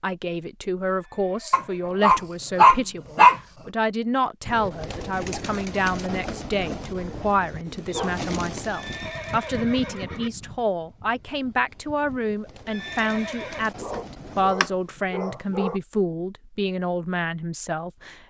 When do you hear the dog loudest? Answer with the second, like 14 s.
3 s.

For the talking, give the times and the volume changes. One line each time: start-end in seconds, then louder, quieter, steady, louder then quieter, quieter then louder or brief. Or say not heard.
0.0-18.2 steady.